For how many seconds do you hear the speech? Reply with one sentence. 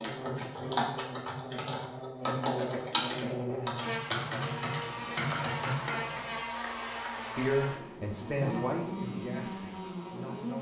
You can hear the speech for 3 seconds altogether.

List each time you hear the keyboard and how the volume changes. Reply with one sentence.
The keyboard can be heard from 0.0 to 6.3 s, at a steady volume.